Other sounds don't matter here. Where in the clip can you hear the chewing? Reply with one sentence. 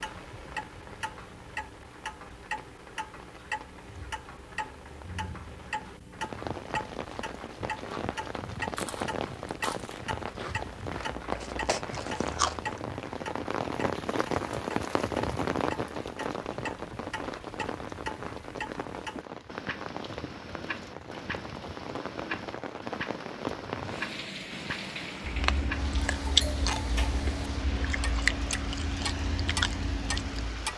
The chewing can be heard from 7.0 to 12.8 s and from 25.2 to 30.7 s.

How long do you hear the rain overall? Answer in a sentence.
The rain can be heard for 31 seconds in total.